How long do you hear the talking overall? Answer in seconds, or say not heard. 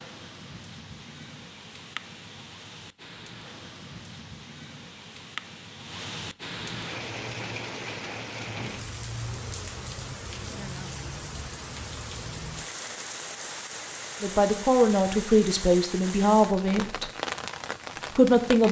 3 s.